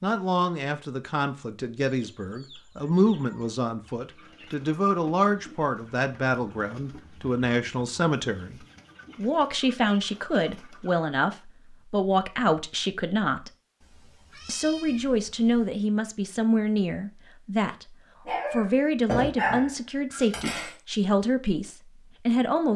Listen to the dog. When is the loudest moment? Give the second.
19 s.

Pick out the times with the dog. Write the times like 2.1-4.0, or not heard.
18.2-20.8.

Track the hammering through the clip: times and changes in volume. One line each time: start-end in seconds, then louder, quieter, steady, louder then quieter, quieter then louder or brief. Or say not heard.
not heard.